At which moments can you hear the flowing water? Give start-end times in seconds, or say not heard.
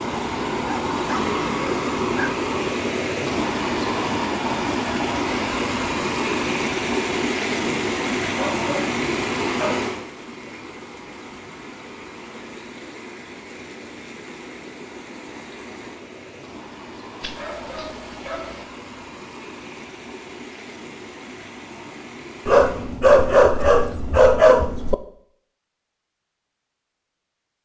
0.0-23.0.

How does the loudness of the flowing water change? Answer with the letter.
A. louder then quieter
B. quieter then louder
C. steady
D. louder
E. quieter
E.